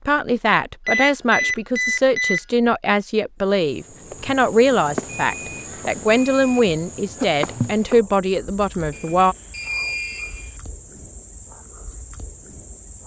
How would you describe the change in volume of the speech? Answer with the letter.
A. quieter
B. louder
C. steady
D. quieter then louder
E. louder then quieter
C.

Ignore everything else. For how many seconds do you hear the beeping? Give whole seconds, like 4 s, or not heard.
5 s.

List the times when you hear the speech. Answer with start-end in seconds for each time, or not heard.
0.1-9.3.